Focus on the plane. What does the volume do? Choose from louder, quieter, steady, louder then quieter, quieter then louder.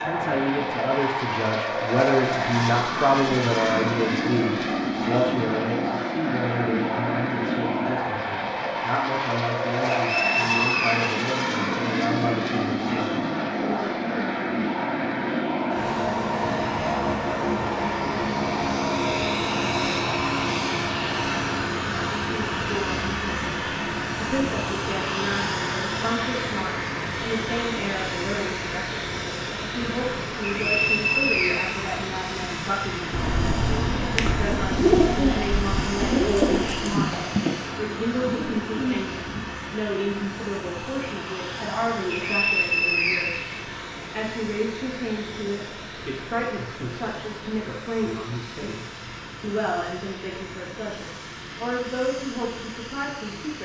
quieter.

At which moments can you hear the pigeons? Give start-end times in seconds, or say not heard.
33.1-39.4.